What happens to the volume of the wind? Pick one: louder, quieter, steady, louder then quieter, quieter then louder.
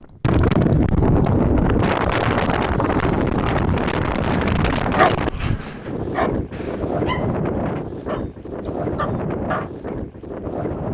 quieter.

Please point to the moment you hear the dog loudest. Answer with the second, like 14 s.
5 s.